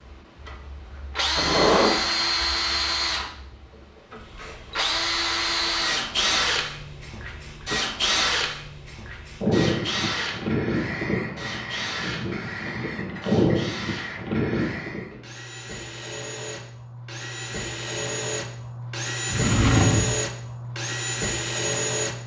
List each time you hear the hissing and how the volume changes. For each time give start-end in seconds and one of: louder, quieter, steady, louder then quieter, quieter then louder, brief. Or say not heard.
0.0-15.1 louder.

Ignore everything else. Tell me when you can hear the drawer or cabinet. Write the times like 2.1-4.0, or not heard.
1.4-2.0, 19.2-20.2.